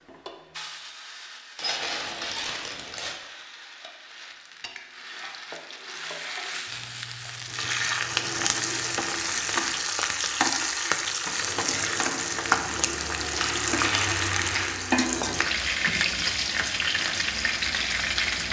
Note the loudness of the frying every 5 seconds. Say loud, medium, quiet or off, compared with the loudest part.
quiet, loud, loud, loud.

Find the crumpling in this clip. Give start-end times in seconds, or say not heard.
1.6-3.1, 6.7-9.1, 13.3-14.8.